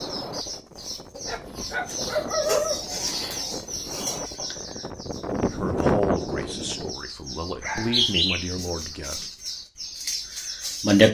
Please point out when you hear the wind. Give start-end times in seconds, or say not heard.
0.0-7.0.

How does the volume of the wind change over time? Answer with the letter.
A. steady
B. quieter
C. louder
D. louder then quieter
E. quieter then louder
C.